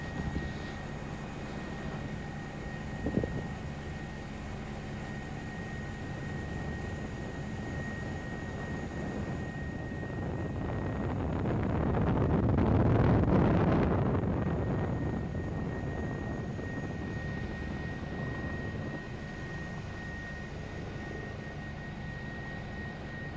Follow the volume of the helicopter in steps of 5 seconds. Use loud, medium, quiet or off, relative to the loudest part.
loud, loud, medium, loud, loud.